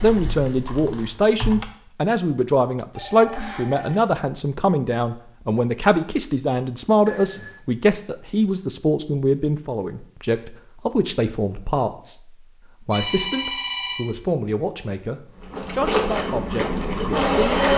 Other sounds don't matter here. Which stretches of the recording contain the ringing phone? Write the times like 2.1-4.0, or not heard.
3.0-4.0, 7.0-7.6, 12.9-14.3.